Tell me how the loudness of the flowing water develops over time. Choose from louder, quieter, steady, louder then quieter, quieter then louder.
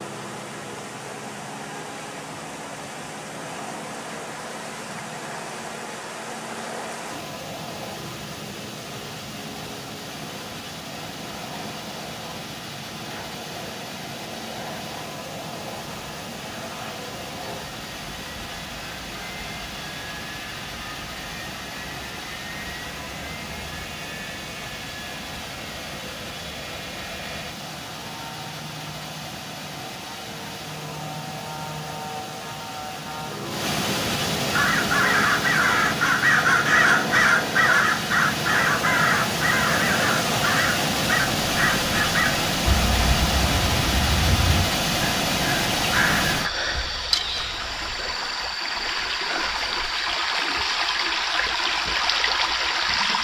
louder.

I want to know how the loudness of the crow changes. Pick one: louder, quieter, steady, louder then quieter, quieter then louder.
quieter.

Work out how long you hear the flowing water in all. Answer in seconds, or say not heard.
53 s.